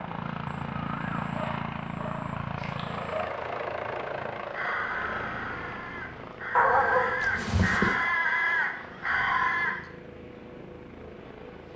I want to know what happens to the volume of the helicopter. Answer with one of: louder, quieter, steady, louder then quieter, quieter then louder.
quieter.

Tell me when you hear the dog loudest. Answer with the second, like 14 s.
7 s.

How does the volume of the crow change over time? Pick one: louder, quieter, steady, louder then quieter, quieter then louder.
louder.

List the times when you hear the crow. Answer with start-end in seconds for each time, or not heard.
4.5-9.8.